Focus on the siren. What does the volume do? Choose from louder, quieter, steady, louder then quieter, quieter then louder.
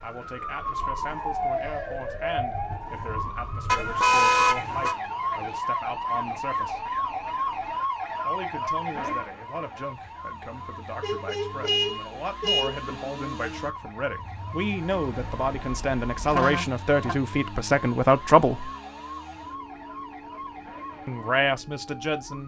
quieter.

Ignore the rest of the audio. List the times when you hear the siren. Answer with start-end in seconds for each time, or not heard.
0.0-22.4.